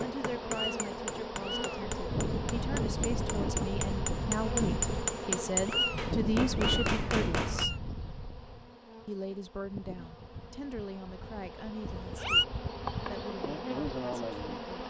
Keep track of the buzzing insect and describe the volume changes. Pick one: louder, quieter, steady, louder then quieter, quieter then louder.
quieter then louder.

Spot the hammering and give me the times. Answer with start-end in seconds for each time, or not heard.
0.0-7.7.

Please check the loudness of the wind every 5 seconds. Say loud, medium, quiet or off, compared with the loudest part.
loud, loud, off.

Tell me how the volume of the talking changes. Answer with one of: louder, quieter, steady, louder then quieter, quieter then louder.
louder then quieter.